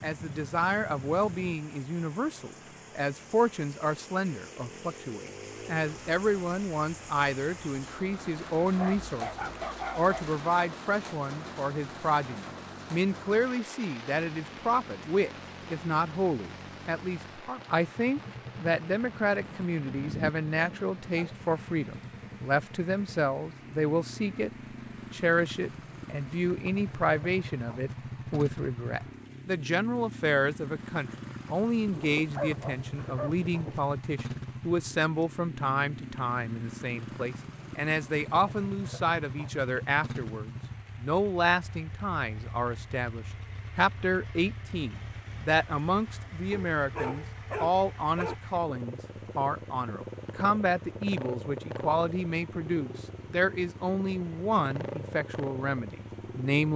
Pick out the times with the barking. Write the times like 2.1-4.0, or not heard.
8.8-10.3, 19.0-21.4, 31.9-33.8, 46.5-48.4.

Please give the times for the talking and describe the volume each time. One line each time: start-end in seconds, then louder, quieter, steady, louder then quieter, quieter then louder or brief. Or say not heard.
0.0-24.5 steady
25.1-56.7 steady.